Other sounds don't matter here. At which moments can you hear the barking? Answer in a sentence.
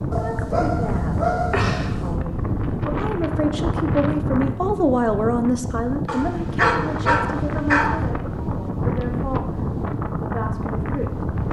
You can hear the barking from 0.1 to 2.2 s and from 6.0 to 8.1 s.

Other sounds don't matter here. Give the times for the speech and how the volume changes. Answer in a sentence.
You can hear the speech from 0.0 to 11.3 s, getting louder then quieter.